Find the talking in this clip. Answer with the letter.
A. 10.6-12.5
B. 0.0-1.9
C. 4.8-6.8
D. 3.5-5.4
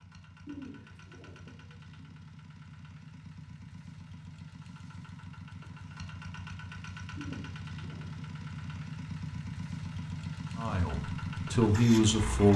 A.